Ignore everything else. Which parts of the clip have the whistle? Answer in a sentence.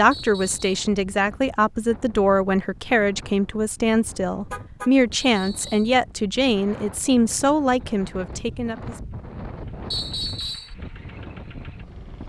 The whistle can be heard from 0.1 to 0.7 s, from 5.2 to 6.0 s and from 9.9 to 10.8 s.